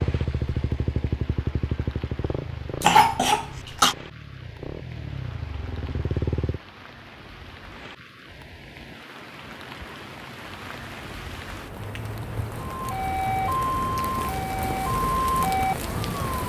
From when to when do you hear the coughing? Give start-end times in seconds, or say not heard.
2.8-4.0.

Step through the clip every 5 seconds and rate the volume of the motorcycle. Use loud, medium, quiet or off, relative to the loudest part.
loud, loud, off, off.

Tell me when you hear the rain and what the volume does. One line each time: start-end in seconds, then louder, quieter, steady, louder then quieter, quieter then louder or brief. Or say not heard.
0.0-16.4 louder.